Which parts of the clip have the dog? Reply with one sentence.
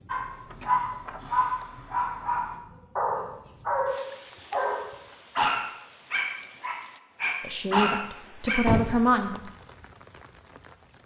The dog can be heard from 0.1 to 8.7 s.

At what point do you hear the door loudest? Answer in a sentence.
The loudest moment of the door is at 9 seconds.